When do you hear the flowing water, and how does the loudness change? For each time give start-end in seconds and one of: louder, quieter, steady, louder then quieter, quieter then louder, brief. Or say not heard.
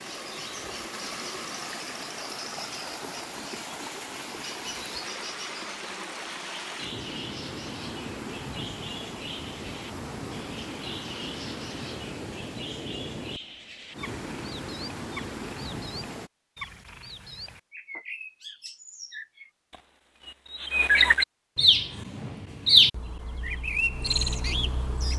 0.0-16.3 steady.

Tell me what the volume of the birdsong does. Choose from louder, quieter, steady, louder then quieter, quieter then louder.
louder.